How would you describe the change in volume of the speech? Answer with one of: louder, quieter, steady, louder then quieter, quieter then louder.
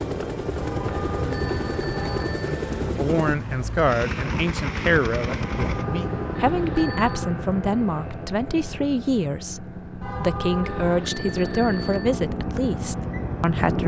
steady.